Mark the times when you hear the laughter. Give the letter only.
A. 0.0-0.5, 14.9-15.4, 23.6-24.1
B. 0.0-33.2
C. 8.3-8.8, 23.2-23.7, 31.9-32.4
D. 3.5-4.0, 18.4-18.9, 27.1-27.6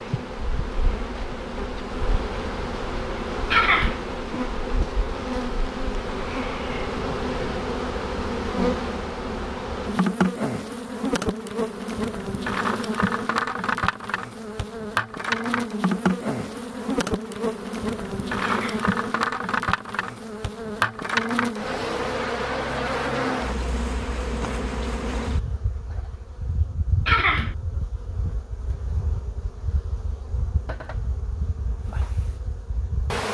D.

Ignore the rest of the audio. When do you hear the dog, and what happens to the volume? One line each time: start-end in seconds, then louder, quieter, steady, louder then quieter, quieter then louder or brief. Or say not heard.
not heard.